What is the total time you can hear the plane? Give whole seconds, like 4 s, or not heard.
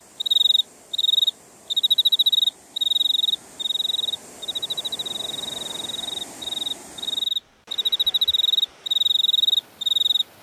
not heard.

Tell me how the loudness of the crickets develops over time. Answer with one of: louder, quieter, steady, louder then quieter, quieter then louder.
quieter then louder.